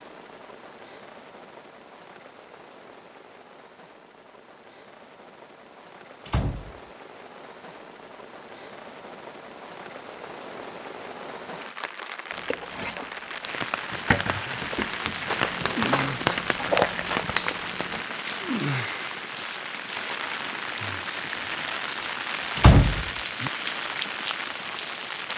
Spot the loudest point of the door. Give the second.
23 s.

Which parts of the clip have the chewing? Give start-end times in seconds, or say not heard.
12.3-18.1.